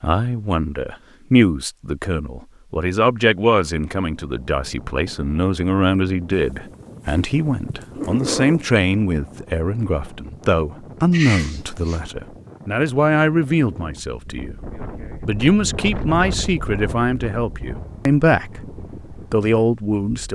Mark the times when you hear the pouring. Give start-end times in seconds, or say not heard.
not heard.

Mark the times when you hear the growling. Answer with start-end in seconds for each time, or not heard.
6.3-8.6, 11.1-12.0.